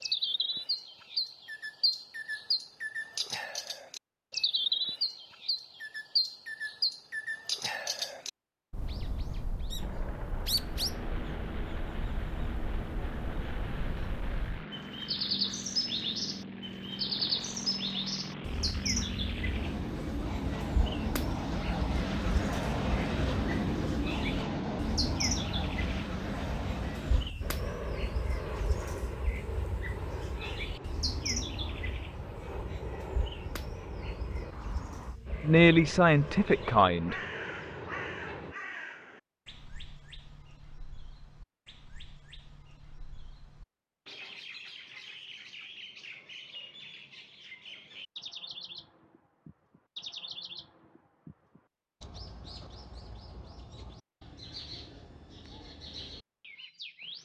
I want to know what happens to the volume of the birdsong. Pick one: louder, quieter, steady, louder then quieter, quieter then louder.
quieter.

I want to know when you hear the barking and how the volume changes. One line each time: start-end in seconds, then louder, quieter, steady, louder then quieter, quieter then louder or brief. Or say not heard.
not heard.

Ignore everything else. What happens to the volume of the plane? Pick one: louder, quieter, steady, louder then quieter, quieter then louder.
louder then quieter.